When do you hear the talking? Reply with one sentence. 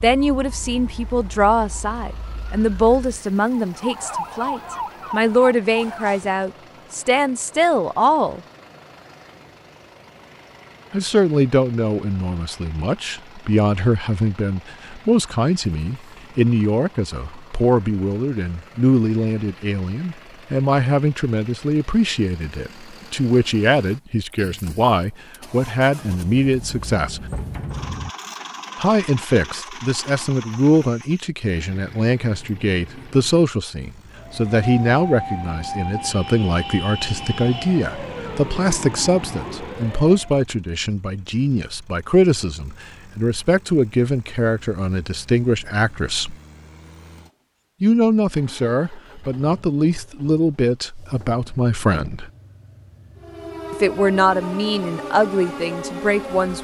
The talking can be heard from 0.0 to 8.4 s, from 10.9 to 27.3 s, from 28.8 to 46.4 s, from 47.8 to 52.3 s and from 53.7 to 56.6 s.